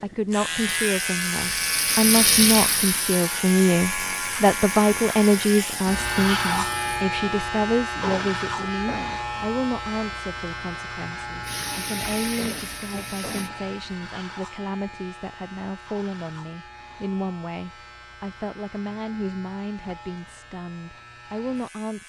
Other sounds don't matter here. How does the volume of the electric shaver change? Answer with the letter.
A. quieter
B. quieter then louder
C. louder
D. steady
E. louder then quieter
A.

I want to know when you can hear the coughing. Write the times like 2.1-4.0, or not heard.
8.0-9.3, 12.3-13.7.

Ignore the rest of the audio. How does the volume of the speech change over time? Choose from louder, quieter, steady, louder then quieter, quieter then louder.
quieter.